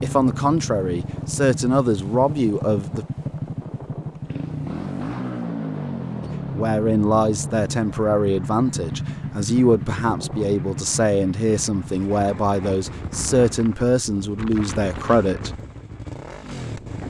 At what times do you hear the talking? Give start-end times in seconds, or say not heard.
0.0-3.0, 6.2-15.5.